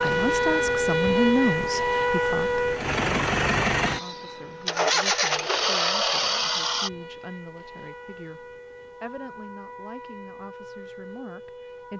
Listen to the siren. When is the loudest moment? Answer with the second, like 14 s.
1 s.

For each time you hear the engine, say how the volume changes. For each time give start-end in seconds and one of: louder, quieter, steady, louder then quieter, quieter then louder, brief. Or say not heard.
0.0-6.9 louder.